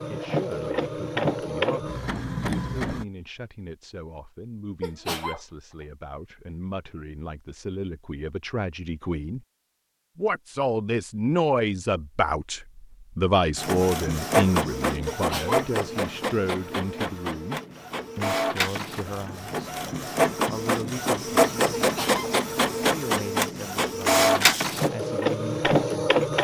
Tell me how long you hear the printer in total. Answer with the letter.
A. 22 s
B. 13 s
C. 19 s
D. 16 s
D.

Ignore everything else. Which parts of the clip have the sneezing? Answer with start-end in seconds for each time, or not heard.
4.8-5.4, 15.1-15.7, 21.8-22.4.